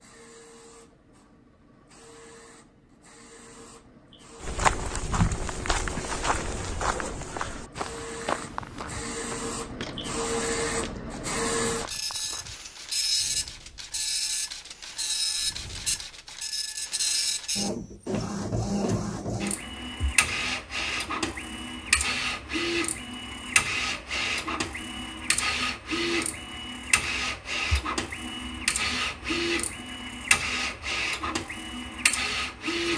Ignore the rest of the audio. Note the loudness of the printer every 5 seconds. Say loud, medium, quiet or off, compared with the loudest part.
quiet, medium, loud, loud, loud, loud, loud.